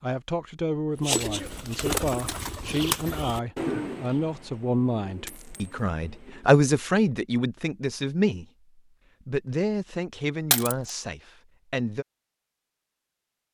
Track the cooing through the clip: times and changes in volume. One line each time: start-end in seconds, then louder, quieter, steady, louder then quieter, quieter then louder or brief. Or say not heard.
1.0-6.6 quieter.